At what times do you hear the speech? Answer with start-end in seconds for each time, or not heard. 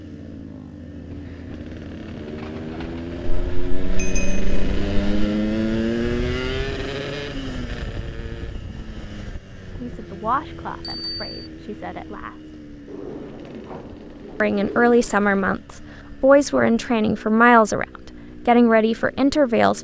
9.8-12.6, 14.4-17.9, 18.4-19.8.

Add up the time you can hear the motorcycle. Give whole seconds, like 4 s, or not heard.
20 s.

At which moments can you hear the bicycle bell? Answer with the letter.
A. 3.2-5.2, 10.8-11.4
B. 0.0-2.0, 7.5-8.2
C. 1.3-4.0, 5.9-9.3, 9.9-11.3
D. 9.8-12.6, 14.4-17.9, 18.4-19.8
A.